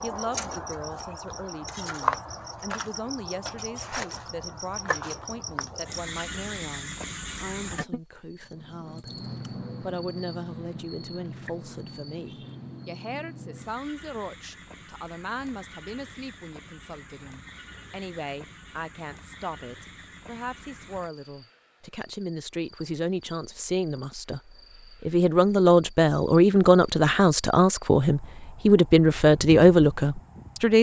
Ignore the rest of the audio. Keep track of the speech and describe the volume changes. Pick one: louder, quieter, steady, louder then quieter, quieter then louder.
louder.